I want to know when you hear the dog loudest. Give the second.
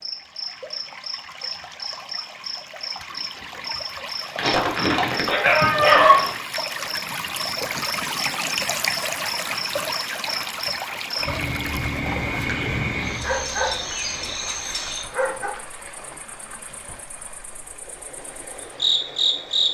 6 s.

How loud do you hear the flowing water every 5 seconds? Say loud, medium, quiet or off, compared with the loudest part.
medium, loud, medium, quiet.